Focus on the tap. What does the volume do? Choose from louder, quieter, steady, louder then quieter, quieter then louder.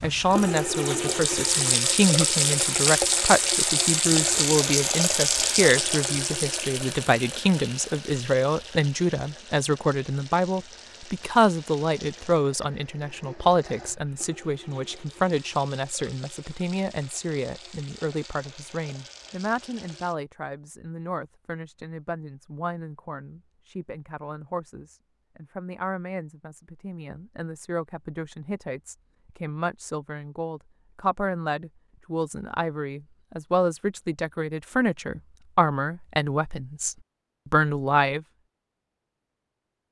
quieter.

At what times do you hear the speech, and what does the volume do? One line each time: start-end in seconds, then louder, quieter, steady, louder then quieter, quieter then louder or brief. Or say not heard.
0.0-38.2 quieter then louder.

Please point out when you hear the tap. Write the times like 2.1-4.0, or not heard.
0.0-20.1.